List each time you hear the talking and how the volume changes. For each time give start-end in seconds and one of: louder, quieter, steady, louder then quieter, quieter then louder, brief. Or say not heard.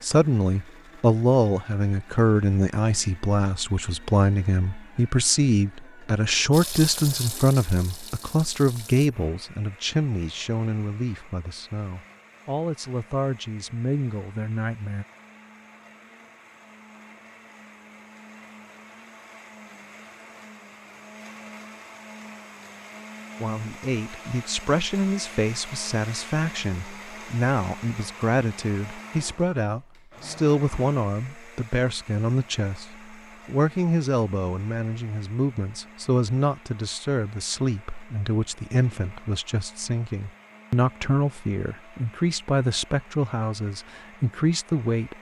0.0-15.1 quieter
23.4-45.1 steady.